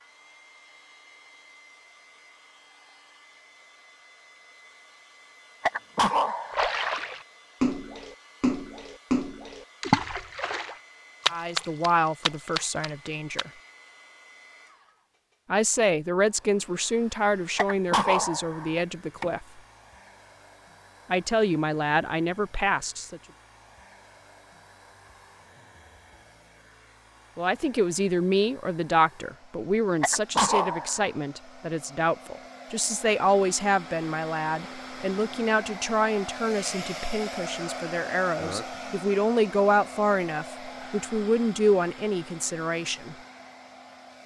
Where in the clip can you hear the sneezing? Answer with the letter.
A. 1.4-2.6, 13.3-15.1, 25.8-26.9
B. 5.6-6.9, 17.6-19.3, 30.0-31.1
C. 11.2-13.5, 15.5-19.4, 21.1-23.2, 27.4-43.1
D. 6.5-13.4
B.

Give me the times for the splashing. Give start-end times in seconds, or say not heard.
6.5-13.4.